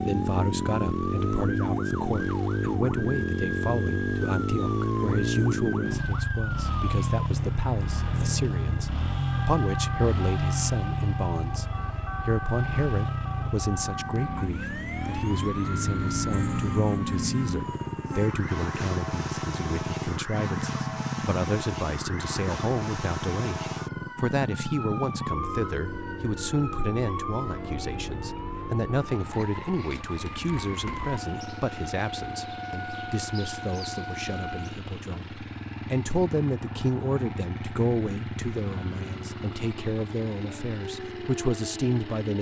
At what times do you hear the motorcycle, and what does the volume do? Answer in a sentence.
The motorcycle can be heard from 0.0 to 42.3 s, getting quieter.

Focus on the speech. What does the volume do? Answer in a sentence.
The volume of the speech stays about the same.